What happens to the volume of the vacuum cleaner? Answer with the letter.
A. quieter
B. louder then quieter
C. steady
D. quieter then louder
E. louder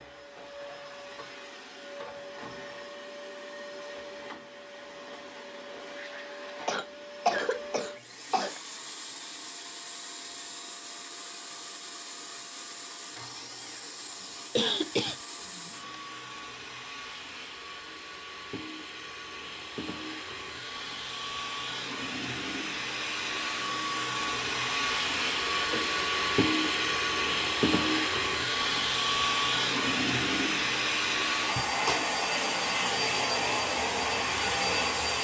E.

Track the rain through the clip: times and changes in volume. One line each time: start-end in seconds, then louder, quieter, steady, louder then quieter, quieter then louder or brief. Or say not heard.
not heard.